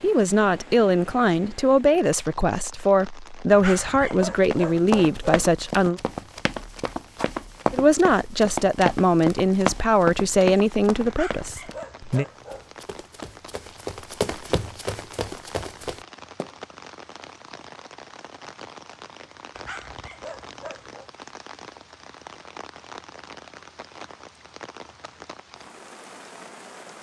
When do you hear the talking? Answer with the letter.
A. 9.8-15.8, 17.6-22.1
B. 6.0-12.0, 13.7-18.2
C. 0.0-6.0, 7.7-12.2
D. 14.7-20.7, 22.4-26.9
C.